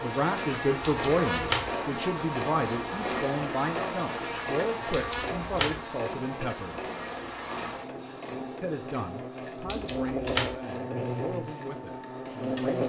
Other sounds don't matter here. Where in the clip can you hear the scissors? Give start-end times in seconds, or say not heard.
0.8-1.7, 4.9-5.8, 9.7-10.6.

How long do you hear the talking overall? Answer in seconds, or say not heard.
11 s.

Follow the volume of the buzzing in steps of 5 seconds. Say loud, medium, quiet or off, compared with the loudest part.
loud, medium, loud.